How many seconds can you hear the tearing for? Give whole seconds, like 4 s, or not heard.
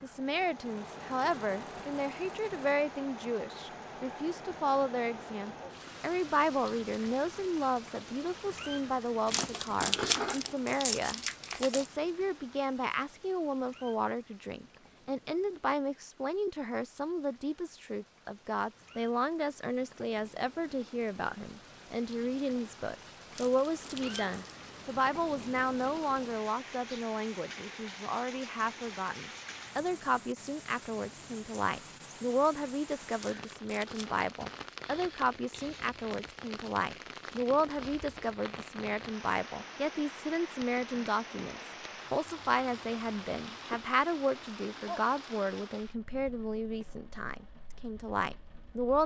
5 s.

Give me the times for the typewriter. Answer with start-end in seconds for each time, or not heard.
not heard.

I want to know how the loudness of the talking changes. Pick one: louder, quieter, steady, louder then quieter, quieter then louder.
steady.